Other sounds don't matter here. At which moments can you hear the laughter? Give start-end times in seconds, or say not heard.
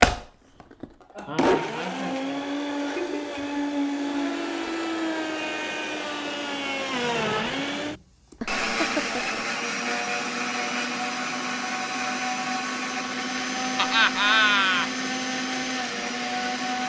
1.1-3.4, 8.4-9.4, 13.8-14.8.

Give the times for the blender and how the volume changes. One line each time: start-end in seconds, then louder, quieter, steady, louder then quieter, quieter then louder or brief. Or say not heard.
0.0-16.8 steady.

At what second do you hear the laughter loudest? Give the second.
14 s.